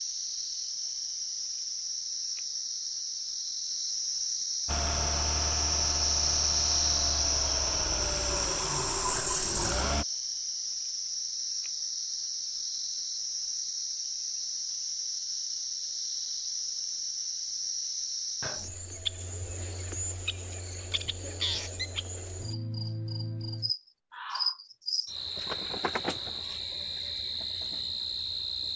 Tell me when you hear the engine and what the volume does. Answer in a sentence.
You can hear the engine from 4.7 to 10.1 s, getting louder.